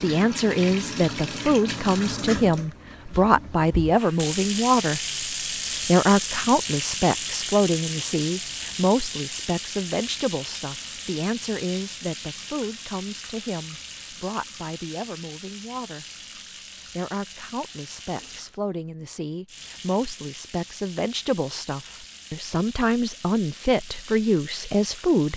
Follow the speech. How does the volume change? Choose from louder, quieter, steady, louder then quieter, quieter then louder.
quieter then louder.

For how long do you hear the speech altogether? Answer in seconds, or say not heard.
24 s.